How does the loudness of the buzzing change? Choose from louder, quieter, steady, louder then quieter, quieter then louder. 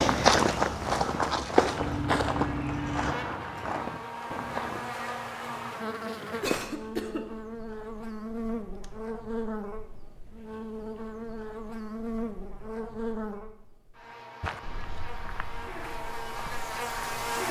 steady.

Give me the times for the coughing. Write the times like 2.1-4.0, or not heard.
6.4-7.2.